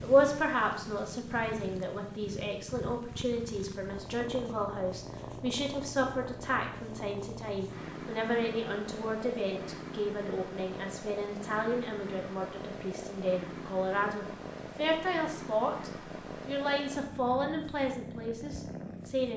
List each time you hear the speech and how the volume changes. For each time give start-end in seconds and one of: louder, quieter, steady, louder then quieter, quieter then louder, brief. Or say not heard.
0.0-19.3 steady.